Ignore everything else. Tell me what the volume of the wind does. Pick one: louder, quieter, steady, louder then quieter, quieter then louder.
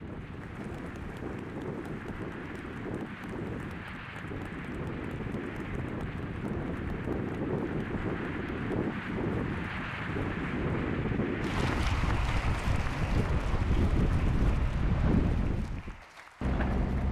louder.